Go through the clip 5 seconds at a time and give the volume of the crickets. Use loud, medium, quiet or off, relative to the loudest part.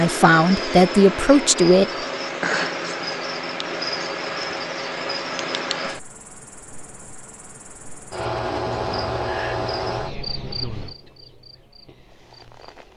loud, loud, medium.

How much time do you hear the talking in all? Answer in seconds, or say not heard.
2 s.